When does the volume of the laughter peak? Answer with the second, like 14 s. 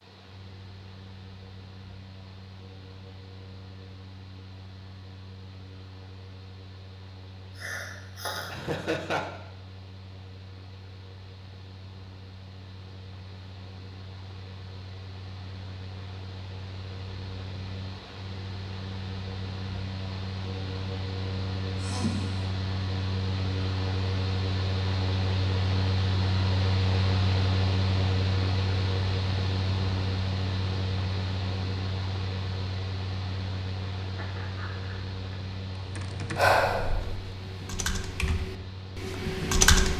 9 s.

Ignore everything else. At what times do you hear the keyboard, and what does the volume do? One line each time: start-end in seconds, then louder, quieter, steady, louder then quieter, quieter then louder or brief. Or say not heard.
35.8-39.9 quieter then louder.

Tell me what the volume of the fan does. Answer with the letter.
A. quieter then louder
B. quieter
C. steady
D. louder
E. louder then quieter
E.